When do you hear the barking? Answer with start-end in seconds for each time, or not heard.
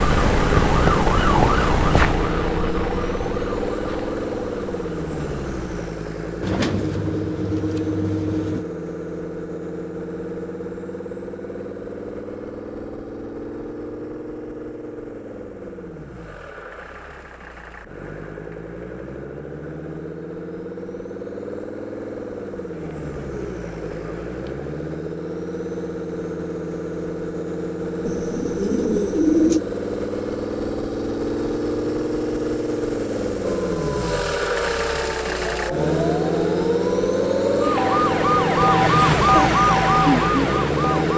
not heard.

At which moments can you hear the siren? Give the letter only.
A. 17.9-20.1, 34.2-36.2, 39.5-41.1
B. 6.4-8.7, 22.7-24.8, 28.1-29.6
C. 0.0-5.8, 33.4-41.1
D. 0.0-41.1
C.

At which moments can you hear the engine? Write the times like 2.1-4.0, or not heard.
0.0-41.1.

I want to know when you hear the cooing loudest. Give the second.
29 s.